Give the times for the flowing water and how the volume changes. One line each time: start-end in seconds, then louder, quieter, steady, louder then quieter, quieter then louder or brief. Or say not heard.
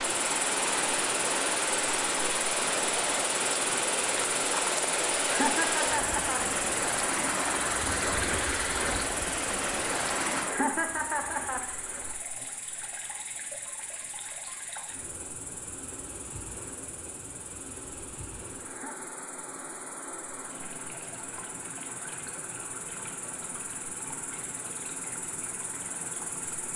0.0-26.7 quieter.